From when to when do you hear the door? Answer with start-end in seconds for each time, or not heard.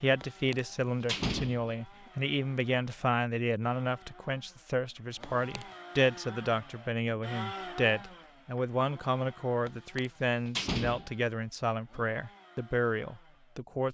0.2-2.1, 5.2-5.7, 9.7-11.1.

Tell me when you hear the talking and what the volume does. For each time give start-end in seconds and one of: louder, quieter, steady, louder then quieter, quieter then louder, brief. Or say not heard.
0.0-13.8 steady.